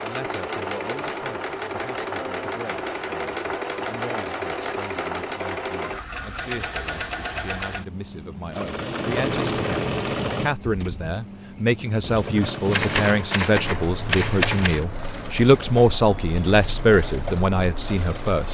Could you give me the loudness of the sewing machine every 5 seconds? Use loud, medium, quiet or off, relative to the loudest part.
loud, loud, loud, medium.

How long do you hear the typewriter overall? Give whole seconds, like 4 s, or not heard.
2 s.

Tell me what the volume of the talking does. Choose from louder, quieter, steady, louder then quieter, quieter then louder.
louder.